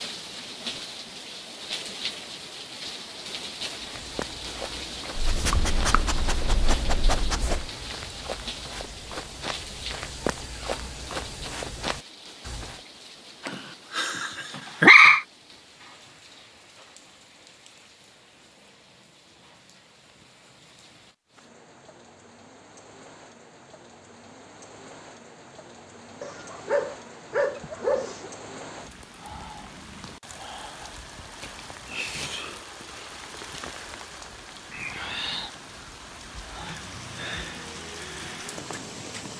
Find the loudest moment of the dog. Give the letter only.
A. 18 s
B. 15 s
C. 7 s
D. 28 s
B.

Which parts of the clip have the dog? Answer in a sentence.
You can hear the dog from 5.2 to 7.7 s, from 13.4 to 15.2 s and from 26.2 to 28.3 s.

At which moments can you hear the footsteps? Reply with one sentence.
The footsteps can be heard from 3.8 to 12.8 s.